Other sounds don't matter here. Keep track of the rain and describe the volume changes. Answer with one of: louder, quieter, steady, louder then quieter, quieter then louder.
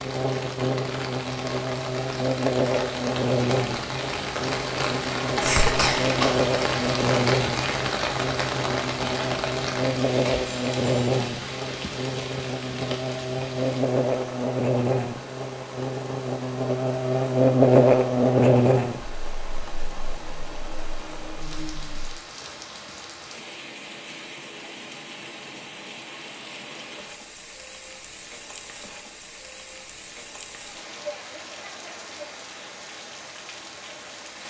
quieter.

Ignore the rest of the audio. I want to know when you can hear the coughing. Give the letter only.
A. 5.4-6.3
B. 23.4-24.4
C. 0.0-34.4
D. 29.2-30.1
A.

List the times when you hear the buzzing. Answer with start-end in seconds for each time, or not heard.
0.0-22.2.